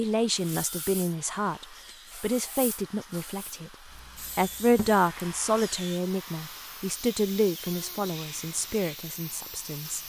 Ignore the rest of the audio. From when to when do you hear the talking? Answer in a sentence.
The talking can be heard from 0.0 to 3.7 s and from 4.3 to 10.0 s.